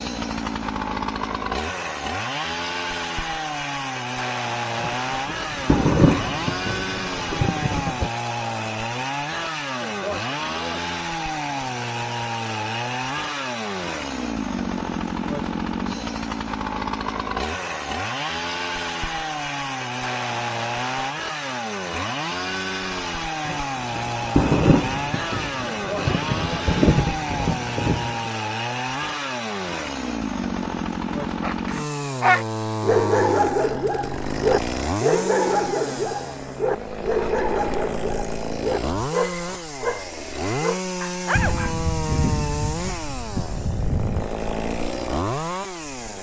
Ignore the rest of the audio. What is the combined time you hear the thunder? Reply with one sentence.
The thunder can be heard for 11 seconds in total.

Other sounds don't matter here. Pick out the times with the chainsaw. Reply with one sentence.
The chainsaw can be heard from 0.0 to 46.1 s.